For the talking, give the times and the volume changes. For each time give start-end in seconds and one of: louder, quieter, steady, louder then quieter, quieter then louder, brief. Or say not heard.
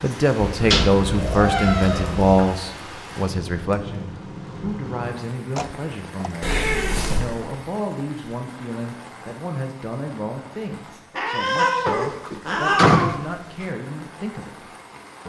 0.0-6.5 quieter
7.2-14.7 steady.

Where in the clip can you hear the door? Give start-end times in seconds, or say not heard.
0.7-1.1, 5.5-6.4, 11.8-13.7.